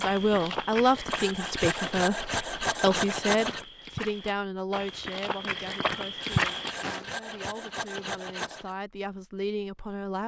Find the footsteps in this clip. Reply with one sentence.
The footsteps can be heard from 0.0 to 7.0 s.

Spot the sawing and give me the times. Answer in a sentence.
The sawing can be heard from 1.1 to 3.6 s and from 6.2 to 8.8 s.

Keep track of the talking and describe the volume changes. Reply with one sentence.
The volume of the talking goes down, then up.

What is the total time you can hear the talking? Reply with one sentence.
You can hear the talking for 10 seconds altogether.